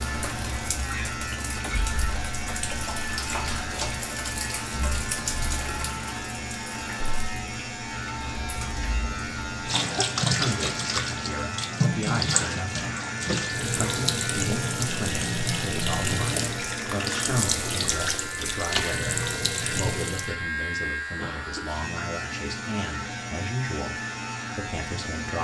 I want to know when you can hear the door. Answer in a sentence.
You can't hear the door here.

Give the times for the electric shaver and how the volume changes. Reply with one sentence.
The electric shaver can be heard from 0.0 to 25.3 s, at a steady volume.